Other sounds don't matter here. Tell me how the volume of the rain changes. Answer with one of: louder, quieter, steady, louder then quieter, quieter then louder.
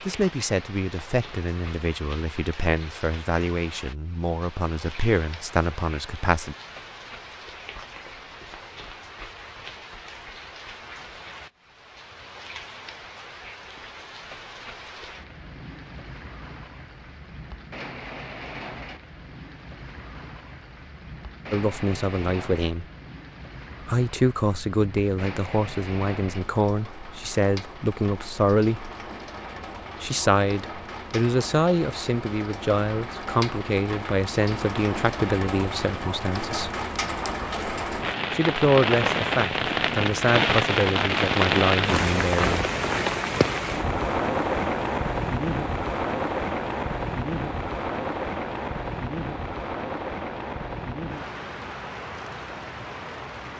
louder.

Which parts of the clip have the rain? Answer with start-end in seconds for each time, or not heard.
0.0-53.5.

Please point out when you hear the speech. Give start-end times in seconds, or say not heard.
0.0-6.5, 21.5-22.9, 23.9-28.9, 30.0-36.7, 38.3-42.6.